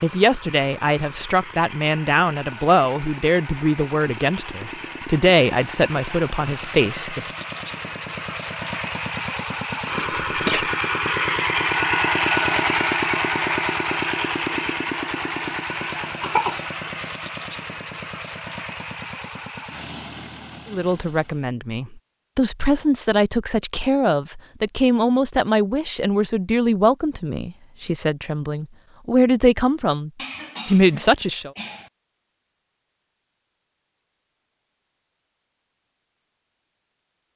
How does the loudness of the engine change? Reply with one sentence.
The volume of the engine goes up, then down.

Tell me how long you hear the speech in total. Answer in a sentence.
You can hear the speech for 18 seconds altogether.